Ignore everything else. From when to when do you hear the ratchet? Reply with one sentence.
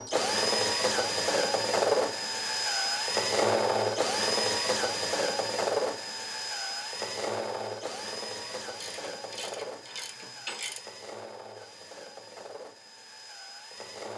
You can hear the ratchet from 8.6 to 10.8 s.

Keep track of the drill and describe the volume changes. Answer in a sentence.
The loudness of the drill goes down.